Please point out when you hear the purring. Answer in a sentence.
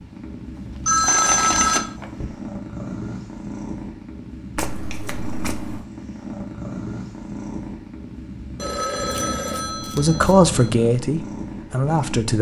The purring can be heard from 0.0 to 12.3 s.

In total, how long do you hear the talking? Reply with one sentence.
The talking can be heard for 2 seconds in total.